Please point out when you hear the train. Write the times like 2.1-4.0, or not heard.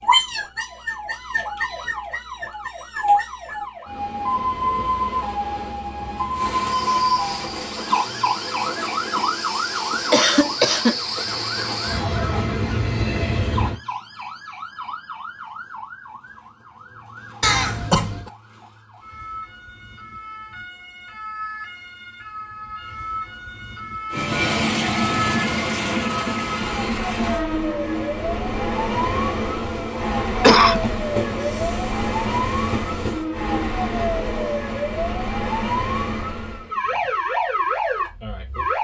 6.3-13.8, 24.1-34.6.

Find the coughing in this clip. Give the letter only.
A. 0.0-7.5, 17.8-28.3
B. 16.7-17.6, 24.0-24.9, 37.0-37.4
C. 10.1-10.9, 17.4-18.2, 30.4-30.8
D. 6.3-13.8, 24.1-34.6
C.